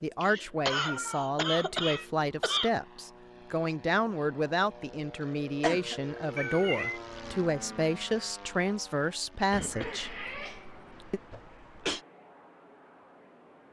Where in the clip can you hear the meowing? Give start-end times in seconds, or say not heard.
0.8-2.1, 6.3-7.0, 9.7-11.1.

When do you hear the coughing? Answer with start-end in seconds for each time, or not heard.
0.2-2.7, 5.2-6.2, 9.5-12.0.